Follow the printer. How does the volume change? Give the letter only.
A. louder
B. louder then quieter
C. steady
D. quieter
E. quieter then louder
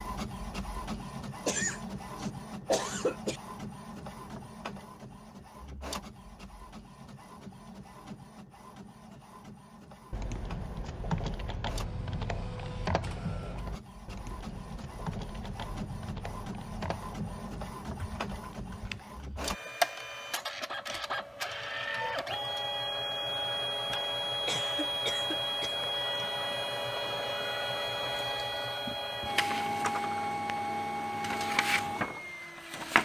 E.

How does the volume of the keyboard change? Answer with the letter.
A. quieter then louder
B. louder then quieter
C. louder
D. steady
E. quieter
E.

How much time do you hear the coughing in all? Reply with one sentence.
The coughing can be heard for 4 seconds in total.